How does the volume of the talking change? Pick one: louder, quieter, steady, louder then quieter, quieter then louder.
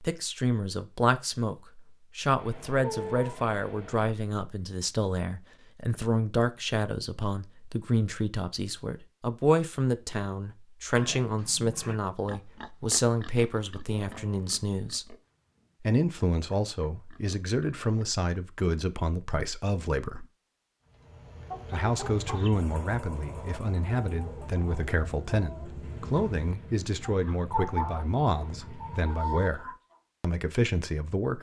steady.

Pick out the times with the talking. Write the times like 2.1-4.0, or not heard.
0.0-15.2, 15.8-20.2, 21.7-31.3.